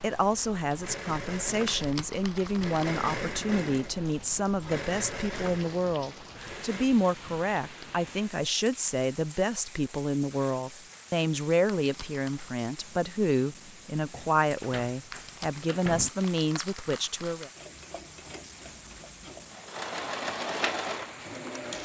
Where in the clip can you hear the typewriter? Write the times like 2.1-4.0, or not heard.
not heard.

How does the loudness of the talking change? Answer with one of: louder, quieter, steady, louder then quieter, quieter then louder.
steady.